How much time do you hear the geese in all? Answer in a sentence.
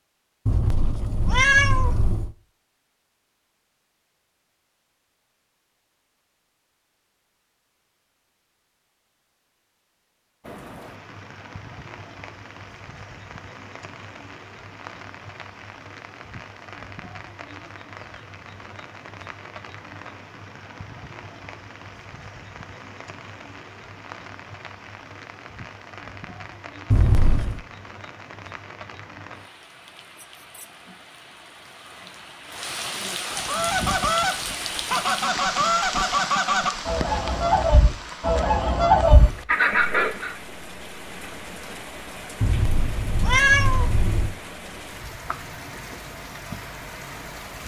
You can hear the geese for 7 seconds altogether.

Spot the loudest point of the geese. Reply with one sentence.
The volume of the geese peaks at 39 seconds.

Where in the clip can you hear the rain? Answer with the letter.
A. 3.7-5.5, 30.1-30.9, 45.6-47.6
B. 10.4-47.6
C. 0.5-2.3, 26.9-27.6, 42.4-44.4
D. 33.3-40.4
B.